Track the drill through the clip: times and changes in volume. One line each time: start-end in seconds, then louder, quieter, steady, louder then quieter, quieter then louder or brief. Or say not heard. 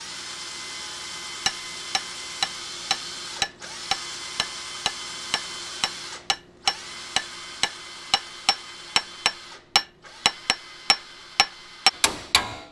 0.0-12.6 quieter.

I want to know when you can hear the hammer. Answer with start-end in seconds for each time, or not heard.
1.4-12.6.